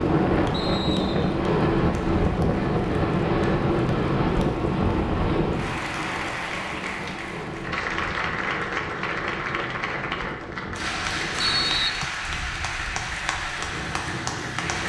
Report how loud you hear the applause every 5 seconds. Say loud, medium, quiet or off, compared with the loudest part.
quiet, loud, loud.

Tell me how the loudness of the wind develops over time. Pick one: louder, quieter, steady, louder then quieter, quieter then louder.
quieter.